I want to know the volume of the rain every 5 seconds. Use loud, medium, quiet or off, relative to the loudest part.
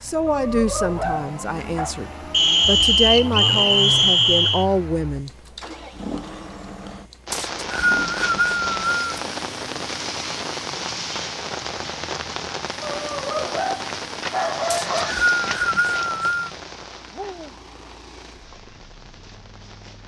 off, loud, loud, medium.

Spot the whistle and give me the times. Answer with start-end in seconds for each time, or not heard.
2.3-4.7, 7.3-9.1, 14.7-16.5.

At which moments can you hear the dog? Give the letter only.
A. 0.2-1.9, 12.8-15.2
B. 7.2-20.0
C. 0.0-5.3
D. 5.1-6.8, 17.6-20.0
A.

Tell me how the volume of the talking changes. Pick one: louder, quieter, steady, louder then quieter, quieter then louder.
quieter then louder.